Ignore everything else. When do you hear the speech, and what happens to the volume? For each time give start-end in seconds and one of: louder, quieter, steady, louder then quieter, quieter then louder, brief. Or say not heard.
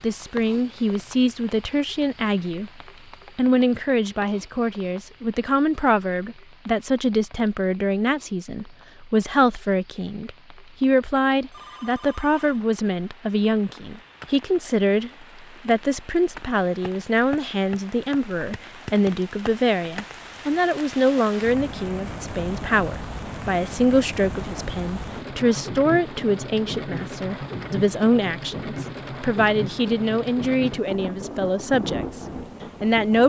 0.0-2.7 brief
3.4-32.2 steady
32.8-33.2 brief.